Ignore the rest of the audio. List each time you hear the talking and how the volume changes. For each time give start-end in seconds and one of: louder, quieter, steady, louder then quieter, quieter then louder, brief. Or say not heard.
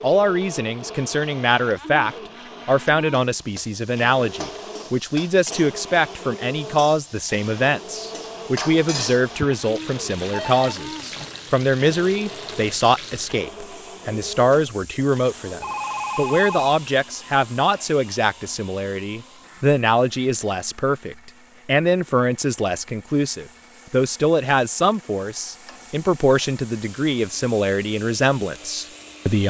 0.0-29.4 steady.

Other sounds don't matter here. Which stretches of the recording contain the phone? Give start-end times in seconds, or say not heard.
10.3-11.6, 15.6-16.8.